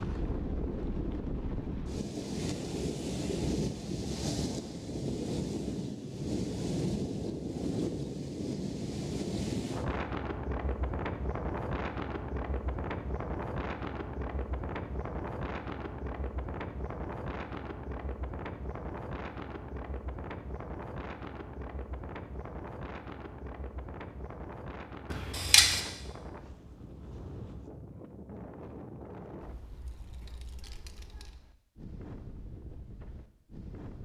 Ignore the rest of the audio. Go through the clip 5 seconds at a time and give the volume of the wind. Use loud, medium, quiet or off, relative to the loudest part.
loud, loud, loud, medium, medium, quiet, quiet.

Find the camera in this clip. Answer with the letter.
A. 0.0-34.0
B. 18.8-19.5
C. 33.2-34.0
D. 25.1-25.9
D.